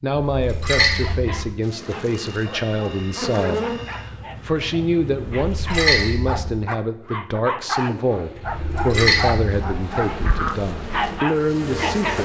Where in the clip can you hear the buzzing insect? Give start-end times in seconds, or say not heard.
1.6-5.7, 8.3-12.2.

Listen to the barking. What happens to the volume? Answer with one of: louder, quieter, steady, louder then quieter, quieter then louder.
louder.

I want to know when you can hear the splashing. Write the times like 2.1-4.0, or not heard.
0.1-1.5, 5.3-6.5, 8.4-9.8.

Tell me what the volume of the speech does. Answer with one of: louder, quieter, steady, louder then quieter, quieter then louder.
steady.